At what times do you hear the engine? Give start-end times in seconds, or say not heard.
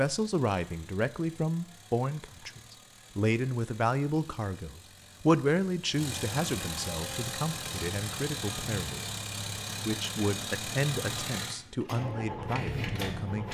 0.0-13.4.